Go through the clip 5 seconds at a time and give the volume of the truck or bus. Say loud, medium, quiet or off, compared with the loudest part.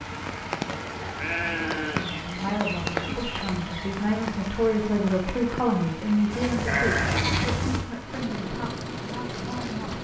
off, loud.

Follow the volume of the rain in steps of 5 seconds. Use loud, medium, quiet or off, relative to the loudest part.
loud, medium.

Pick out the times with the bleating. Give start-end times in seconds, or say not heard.
0.7-2.5, 6.3-7.8.